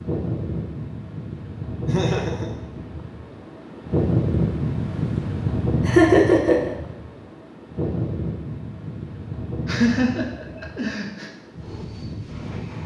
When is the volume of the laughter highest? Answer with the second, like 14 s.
6 s.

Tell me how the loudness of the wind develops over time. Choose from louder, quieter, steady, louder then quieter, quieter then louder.
louder then quieter.